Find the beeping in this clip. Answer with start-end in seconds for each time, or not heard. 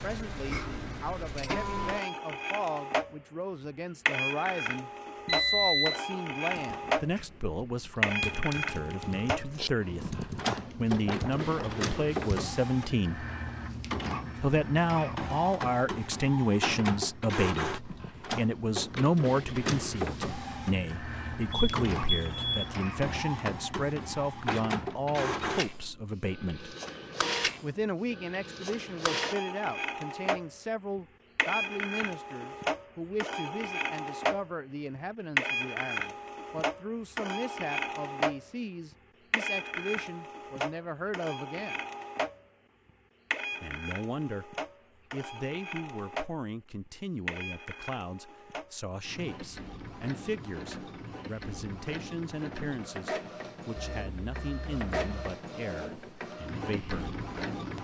5.2-6.0, 21.5-22.7, 53.8-55.4.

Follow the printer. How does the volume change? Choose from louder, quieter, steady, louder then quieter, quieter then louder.
quieter.